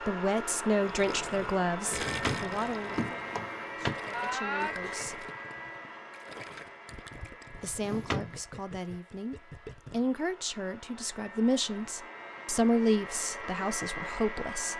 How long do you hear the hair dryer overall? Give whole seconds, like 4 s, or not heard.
15 s.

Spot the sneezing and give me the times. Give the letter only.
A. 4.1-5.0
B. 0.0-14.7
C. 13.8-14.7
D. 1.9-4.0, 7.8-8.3
A.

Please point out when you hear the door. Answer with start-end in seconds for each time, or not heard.
1.9-4.0, 7.8-8.3.